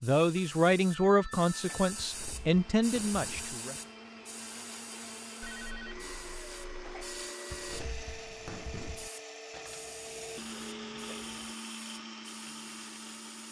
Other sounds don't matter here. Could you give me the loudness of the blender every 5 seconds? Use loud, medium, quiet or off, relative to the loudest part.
medium, loud, loud.